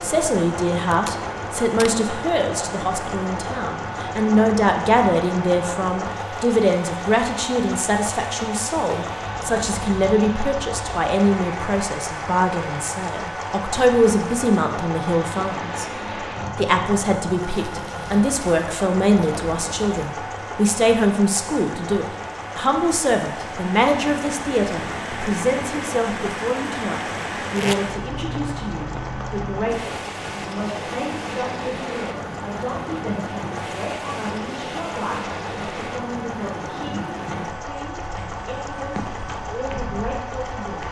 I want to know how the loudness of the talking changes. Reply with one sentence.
The loudness of the talking goes down.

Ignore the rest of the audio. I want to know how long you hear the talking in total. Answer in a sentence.
The talking can be heard for 40 seconds in total.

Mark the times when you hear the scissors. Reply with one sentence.
The scissors can't be heard in this clip.